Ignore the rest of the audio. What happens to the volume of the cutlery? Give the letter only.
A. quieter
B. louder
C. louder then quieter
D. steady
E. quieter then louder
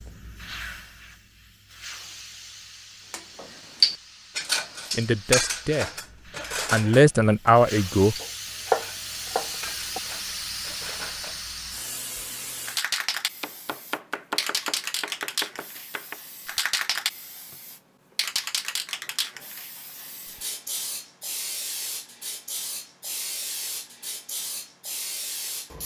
A.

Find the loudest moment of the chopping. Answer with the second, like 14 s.
9 s.